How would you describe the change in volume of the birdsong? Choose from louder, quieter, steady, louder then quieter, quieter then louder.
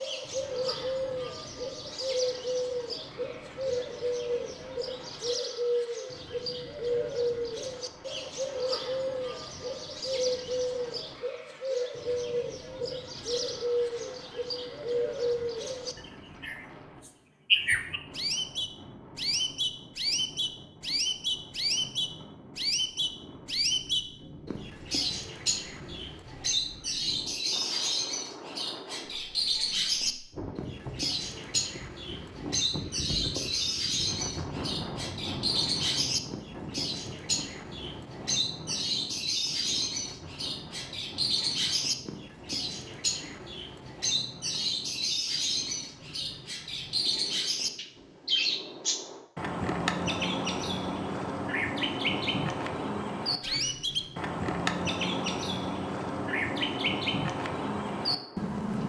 steady.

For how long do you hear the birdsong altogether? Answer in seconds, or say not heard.
59 s.